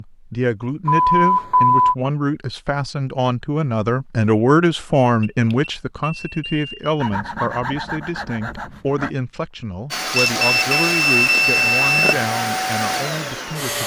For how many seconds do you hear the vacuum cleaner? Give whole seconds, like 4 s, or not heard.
4 s.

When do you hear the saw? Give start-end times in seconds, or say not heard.
7.0-9.1.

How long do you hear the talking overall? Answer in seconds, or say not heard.
14 s.